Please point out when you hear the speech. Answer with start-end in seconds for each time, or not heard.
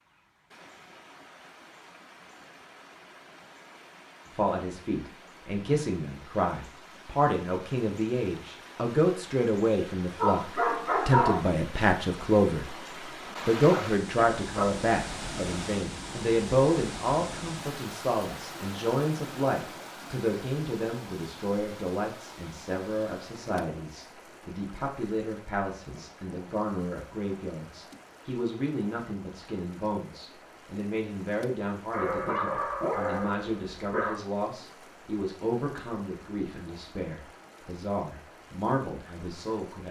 4.3-12.8, 13.4-39.8.